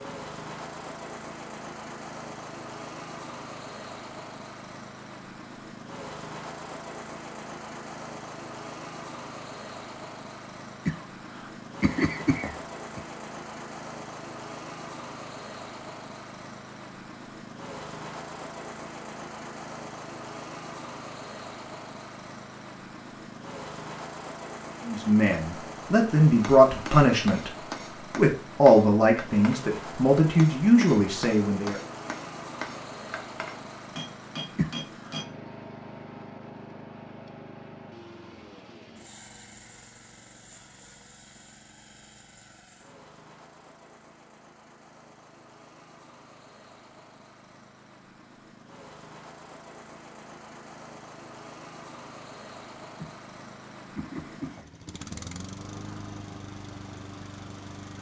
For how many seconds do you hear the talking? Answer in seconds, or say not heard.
7 s.